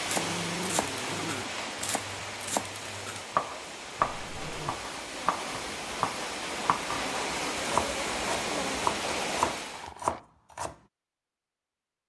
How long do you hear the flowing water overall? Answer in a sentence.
You can hear the flowing water for 10 seconds altogether.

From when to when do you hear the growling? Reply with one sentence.
The growling can be heard from 0.1 to 1.7 s, from 4.0 to 4.8 s and from 8.2 to 10.2 s.